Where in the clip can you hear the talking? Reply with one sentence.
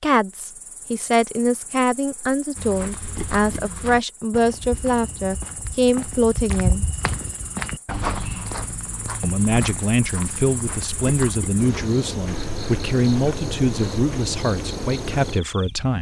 The talking can be heard from 0.0 to 6.8 s and from 9.2 to 15.9 s.